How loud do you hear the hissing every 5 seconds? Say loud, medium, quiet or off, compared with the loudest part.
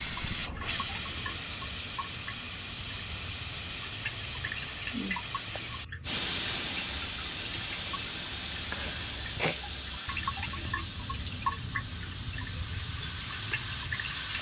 loud, loud, medium.